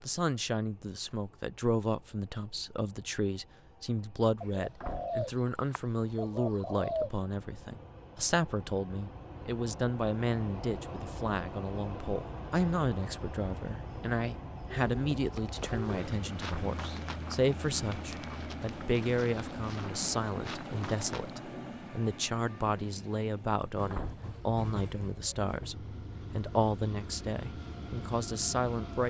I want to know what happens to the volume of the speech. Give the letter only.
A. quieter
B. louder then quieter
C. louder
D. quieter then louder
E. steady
E.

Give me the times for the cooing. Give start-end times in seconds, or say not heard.
4.4-7.1, 14.7-16.4.